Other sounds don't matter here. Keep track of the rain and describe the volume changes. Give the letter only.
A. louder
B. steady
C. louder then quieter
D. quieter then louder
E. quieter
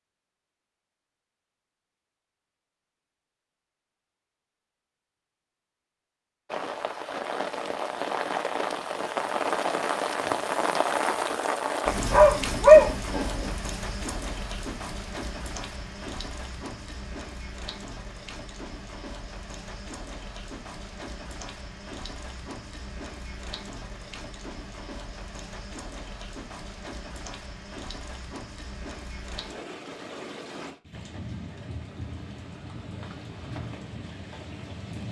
E.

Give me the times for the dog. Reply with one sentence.
You can hear the dog from 12.1 to 13.5 s.